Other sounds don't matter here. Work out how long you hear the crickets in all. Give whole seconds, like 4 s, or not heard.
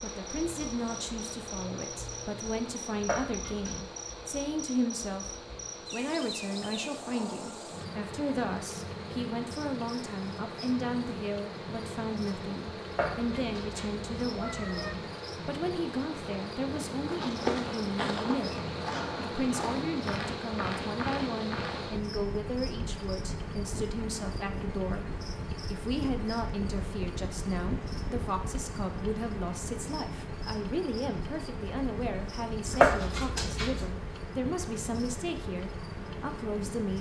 37 s.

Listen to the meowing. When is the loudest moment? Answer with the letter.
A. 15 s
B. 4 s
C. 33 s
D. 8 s
C.